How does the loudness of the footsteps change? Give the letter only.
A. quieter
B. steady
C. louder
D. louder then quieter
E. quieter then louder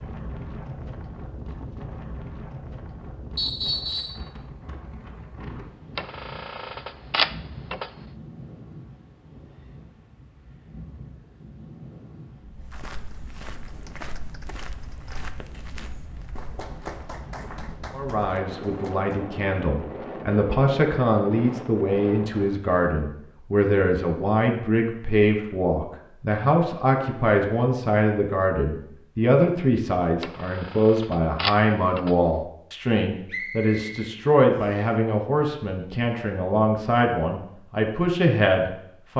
A.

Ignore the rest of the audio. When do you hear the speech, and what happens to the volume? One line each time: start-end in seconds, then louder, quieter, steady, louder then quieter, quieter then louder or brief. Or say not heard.
17.9-39.1 steady.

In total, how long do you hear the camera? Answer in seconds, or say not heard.
4 s.